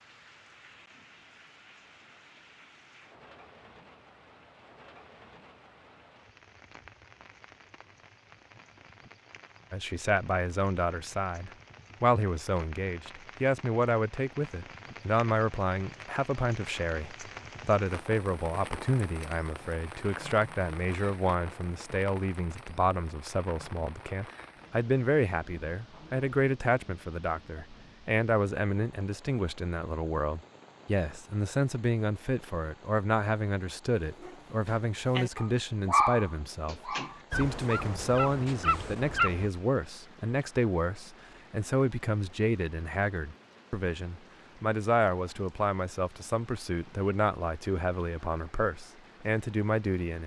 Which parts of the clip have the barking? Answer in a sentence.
The barking can be heard from 34.2 to 39.5 s.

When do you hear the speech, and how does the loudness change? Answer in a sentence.
The speech can be heard from 9.7 to 50.2 s, at a steady volume.